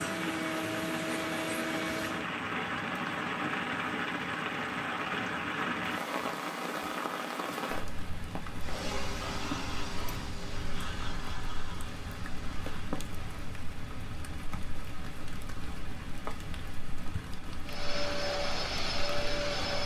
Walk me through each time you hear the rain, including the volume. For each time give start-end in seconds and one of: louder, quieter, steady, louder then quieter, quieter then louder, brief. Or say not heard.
0.0-19.8 quieter.